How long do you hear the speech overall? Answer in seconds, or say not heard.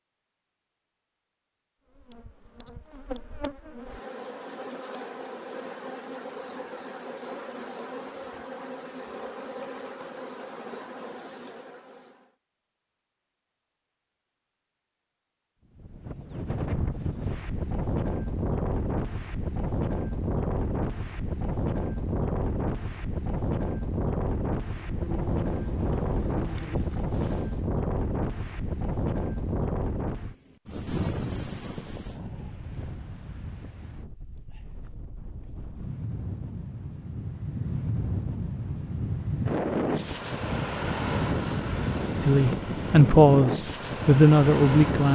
3 s.